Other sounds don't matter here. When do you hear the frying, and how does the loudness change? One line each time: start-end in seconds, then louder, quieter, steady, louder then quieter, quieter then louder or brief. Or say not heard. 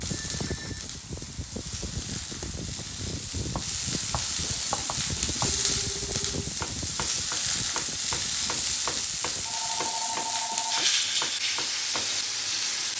0.0-12.9 louder.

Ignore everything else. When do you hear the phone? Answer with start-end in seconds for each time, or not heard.
0.1-0.8, 5.5-6.5, 9.4-10.9.